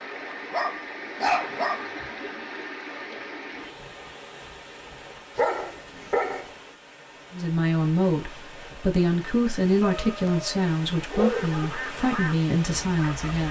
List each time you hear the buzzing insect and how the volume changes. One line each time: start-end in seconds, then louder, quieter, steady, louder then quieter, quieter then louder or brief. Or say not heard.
not heard.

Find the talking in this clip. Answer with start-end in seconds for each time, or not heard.
7.3-13.4.